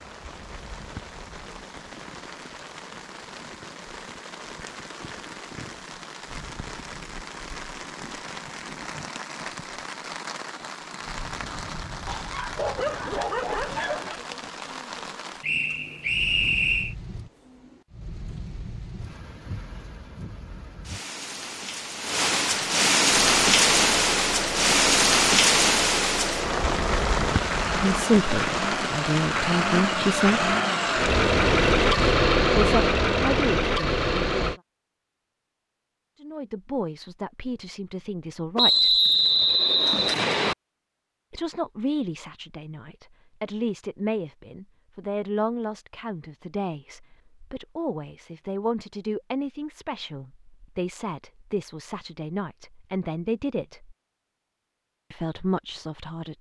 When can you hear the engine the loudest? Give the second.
32 s.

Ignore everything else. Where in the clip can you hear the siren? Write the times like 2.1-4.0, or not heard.
not heard.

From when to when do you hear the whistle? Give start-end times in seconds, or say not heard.
15.4-16.9, 38.5-40.5.